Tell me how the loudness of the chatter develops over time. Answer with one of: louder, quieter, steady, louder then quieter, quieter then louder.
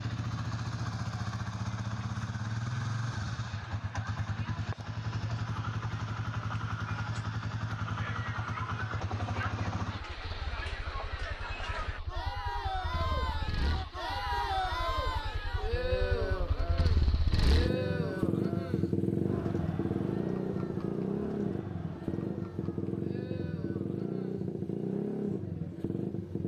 louder then quieter.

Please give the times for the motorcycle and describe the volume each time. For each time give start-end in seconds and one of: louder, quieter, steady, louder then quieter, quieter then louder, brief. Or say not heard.
0.0-26.4 quieter then louder.